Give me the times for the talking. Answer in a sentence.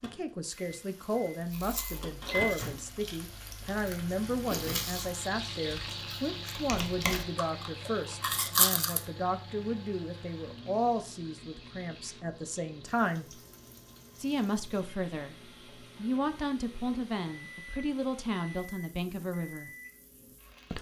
The talking can be heard from 0.0 to 13.4 s and from 14.2 to 19.7 s.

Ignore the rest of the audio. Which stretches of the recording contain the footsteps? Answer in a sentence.
The footsteps can't be heard in this clip.